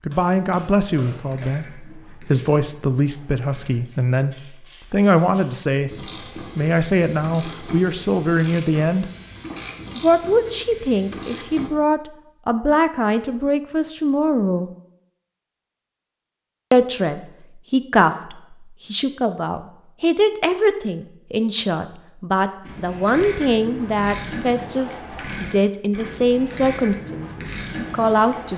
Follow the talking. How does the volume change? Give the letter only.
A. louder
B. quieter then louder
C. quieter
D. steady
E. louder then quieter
D.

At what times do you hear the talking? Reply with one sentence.
You can hear the talking from 0.1 to 9.1 s, from 9.9 to 14.7 s and from 16.7 to 28.5 s.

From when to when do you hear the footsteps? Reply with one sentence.
The footsteps can't be heard in this clip.